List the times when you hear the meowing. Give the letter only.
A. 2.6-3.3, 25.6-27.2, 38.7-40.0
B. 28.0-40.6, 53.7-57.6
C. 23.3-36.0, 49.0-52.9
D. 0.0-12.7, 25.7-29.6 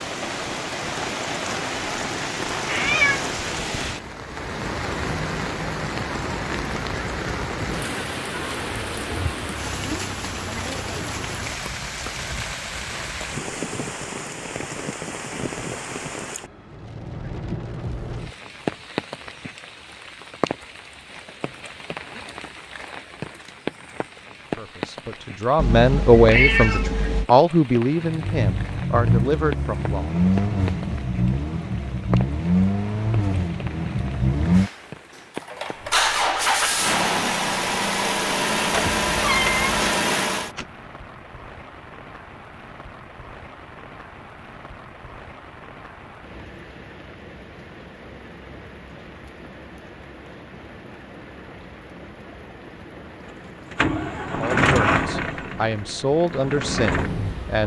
A.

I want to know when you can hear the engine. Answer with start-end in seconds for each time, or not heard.
28.0-40.6, 53.7-57.6.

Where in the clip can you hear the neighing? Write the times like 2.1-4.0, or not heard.
not heard.